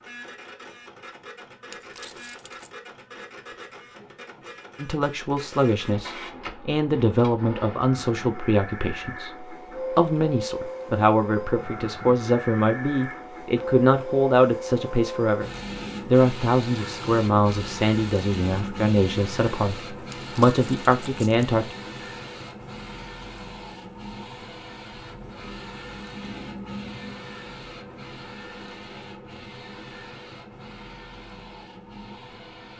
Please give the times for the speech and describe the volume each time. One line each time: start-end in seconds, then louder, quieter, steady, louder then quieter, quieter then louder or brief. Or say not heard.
4.8-21.8 steady.